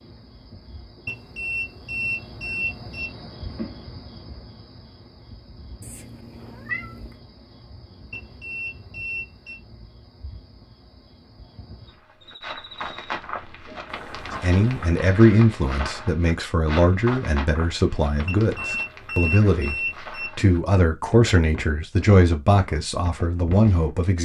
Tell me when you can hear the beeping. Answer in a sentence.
You can hear the beeping from 1.1 to 3.1 s, from 8.1 to 9.6 s and from 18.2 to 20.3 s.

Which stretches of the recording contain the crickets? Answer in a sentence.
You can hear the crickets from 0.0 to 13.2 s.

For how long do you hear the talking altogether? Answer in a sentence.
You can hear the talking for 10 seconds altogether.